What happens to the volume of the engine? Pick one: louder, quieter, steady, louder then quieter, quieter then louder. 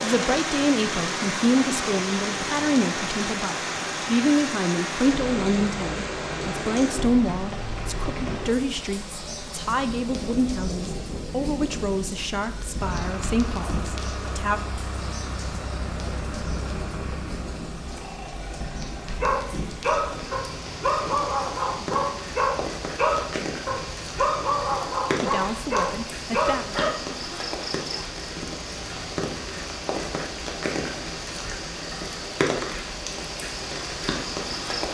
quieter.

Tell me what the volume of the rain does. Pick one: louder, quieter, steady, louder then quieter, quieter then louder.
quieter then louder.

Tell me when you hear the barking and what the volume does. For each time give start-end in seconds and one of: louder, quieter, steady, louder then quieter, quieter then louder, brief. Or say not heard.
19.1-26.9 steady.